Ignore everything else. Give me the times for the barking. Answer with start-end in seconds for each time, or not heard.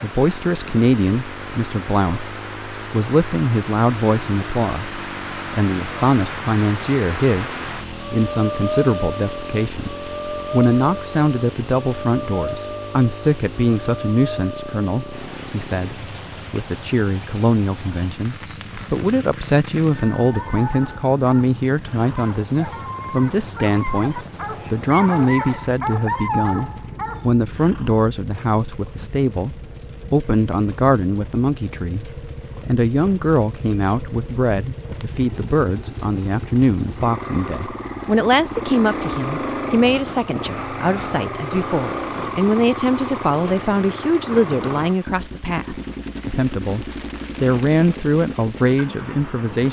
20.4-28.0.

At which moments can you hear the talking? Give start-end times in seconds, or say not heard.
0.0-49.6.